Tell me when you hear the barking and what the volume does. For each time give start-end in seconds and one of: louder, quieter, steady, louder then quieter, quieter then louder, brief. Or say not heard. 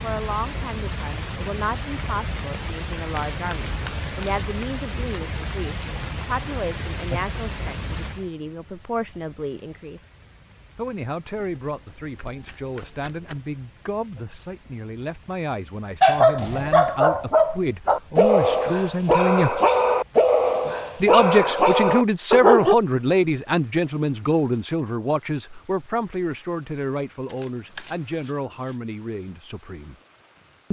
16.0-22.8 steady.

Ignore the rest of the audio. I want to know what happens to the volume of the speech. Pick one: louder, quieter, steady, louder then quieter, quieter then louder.
louder then quieter.